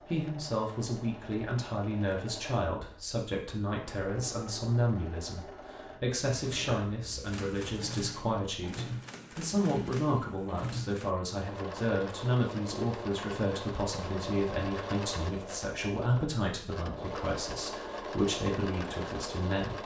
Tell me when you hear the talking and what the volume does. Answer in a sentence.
You can hear the talking from 0.0 to 19.8 s, at a steady volume.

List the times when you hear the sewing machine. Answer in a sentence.
You can hear the sewing machine from 0.0 to 19.8 s.